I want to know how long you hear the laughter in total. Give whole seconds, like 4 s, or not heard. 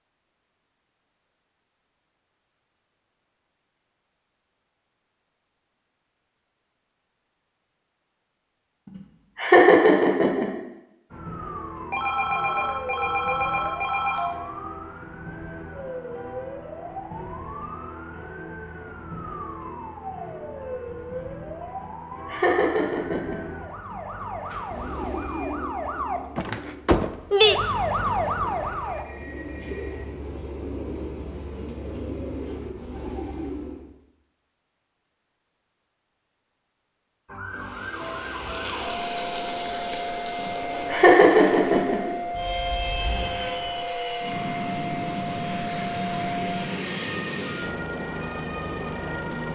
4 s.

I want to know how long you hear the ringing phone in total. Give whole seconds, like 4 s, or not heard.
5 s.